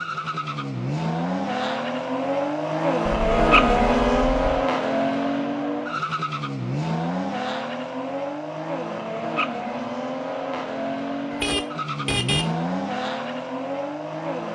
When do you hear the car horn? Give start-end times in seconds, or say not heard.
3.1-4.7, 11.3-12.5.